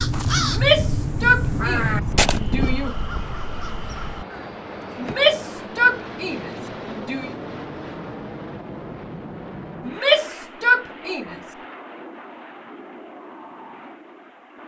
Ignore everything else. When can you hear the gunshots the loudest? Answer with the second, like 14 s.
2 s.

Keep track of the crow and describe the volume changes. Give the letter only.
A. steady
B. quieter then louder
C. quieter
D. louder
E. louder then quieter
C.